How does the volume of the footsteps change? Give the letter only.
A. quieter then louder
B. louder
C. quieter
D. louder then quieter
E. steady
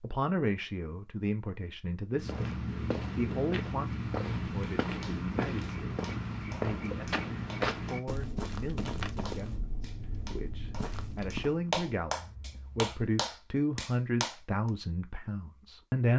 C.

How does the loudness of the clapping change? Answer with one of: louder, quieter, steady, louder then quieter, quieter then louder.
louder.